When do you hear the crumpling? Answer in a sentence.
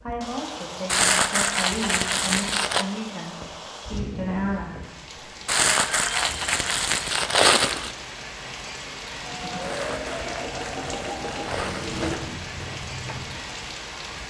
The crumpling can be heard from 0.8 to 2.9 s, from 5.5 to 8.0 s and from 9.6 to 12.2 s.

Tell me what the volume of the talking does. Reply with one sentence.
The loudness of the talking goes up.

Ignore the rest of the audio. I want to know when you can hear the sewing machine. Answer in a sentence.
You can hear the sewing machine from 9.2 to 14.2 s.